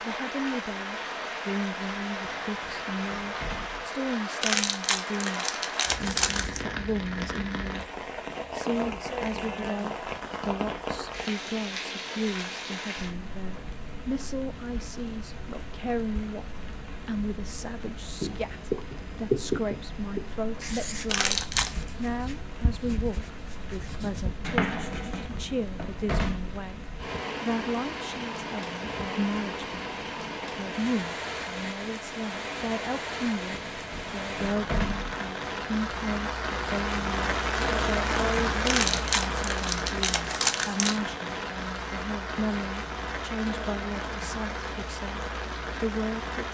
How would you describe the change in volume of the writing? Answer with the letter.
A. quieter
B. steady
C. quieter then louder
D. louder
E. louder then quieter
C.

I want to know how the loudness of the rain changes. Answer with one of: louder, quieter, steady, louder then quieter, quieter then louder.
quieter then louder.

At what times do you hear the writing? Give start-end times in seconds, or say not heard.
18.2-25.2.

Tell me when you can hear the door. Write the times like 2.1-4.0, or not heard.
2.2-3.9, 25.1-26.6, 33.5-35.1.